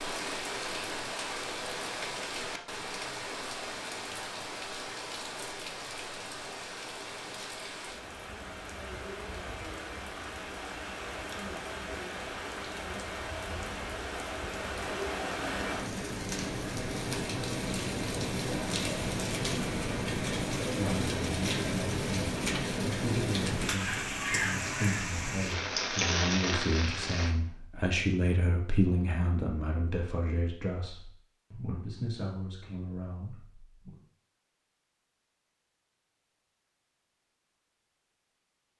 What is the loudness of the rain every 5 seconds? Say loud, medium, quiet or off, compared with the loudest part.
medium, medium, medium, loud, loud, loud, off, off.